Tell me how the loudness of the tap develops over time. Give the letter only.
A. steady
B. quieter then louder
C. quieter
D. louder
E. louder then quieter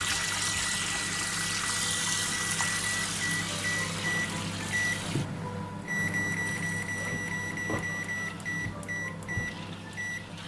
C.